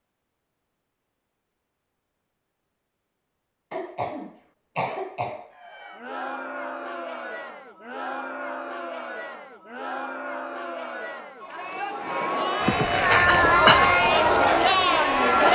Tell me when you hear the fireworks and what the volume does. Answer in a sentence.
The fireworks can't be heard in this clip.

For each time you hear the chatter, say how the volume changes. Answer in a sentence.
The chatter can be heard from 5.5 to 15.4 s, getting louder.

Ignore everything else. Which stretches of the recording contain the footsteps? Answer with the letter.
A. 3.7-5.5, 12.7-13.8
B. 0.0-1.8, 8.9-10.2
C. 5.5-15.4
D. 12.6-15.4
D.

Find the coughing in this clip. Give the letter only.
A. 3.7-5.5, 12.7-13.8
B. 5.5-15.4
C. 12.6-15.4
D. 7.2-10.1
A.